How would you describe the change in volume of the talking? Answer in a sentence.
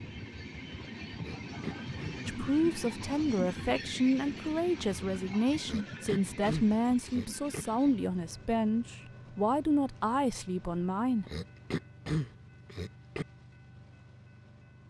The volume of the talking stays about the same.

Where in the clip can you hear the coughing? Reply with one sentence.
The coughing can be heard from 1.2 to 2.2 s, from 5.7 to 7.7 s and from 11.2 to 13.2 s.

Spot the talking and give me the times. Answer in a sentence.
You can hear the talking from 2.2 to 11.2 s.